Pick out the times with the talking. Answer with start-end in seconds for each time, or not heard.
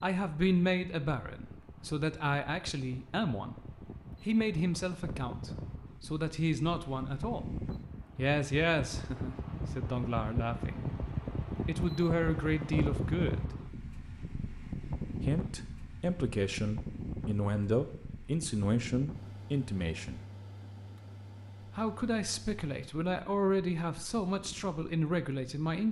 0.0-7.5, 8.2-10.8, 11.7-13.6, 15.2-20.2, 21.8-25.8.